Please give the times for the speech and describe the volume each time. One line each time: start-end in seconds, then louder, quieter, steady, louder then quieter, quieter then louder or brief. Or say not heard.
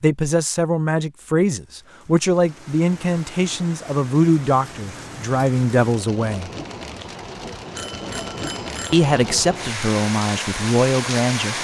0.0-6.5 steady
8.9-11.5 brief.